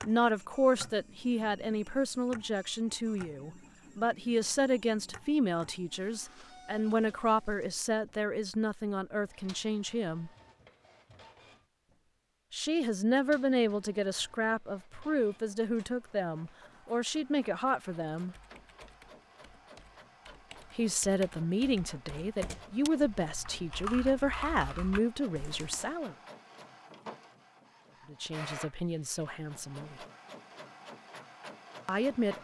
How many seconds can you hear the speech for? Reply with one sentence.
You can hear the speech for 24 seconds altogether.